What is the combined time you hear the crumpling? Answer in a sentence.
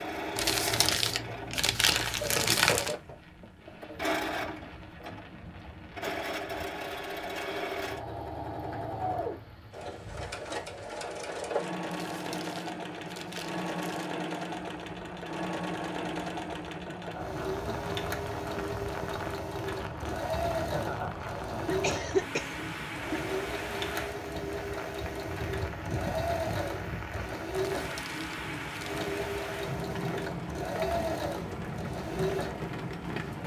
The crumpling can be heard for 6 seconds in total.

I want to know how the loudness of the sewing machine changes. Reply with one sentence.
The volume of the sewing machine stays about the same.